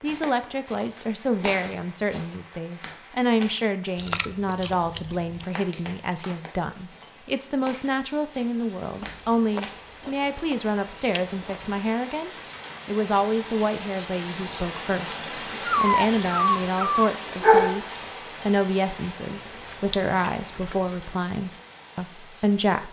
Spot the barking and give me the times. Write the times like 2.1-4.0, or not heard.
15.7-17.8.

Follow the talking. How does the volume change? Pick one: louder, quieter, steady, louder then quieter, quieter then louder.
steady.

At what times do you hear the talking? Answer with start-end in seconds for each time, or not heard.
0.0-22.8.